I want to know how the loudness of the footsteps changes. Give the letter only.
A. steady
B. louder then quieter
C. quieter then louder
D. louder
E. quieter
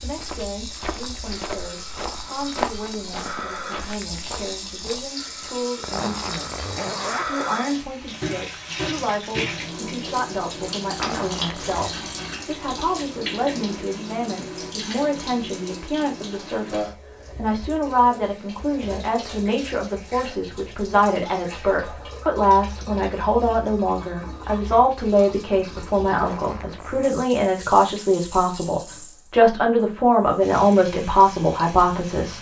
B.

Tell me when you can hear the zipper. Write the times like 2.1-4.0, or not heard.
5.8-7.2, 10.9-11.9, 26.1-27.1.